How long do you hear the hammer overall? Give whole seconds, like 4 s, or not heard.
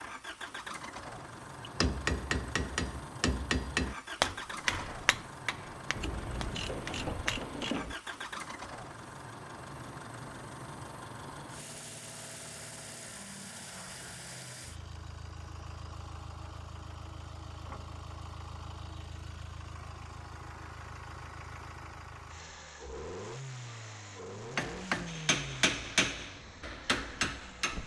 9 s.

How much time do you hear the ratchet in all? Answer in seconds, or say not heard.
2 s.